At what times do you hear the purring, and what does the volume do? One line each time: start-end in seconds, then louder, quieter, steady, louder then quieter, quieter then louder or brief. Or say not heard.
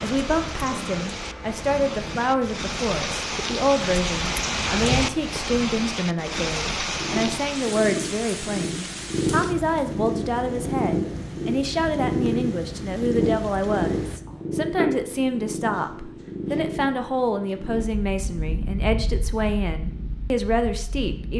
0.0-21.3 louder then quieter.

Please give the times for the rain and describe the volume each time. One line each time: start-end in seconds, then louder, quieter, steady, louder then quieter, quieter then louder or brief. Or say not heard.
0.0-14.2 louder then quieter.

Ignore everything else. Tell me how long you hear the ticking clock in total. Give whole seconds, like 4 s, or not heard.
not heard.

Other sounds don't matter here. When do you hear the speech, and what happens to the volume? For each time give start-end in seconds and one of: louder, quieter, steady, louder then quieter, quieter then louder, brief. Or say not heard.
0.0-21.3 steady.